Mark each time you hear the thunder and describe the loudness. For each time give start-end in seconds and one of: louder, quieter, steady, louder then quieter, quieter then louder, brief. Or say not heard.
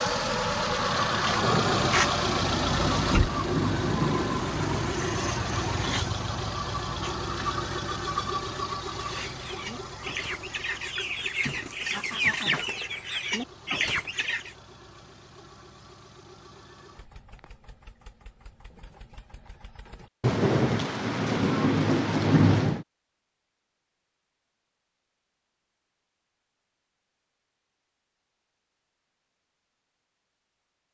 1.4-6.1 louder then quieter
20.2-22.9 brief.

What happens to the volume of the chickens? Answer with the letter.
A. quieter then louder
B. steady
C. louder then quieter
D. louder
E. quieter
D.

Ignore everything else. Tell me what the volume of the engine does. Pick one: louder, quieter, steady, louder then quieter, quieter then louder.
quieter.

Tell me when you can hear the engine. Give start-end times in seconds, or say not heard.
0.0-20.1.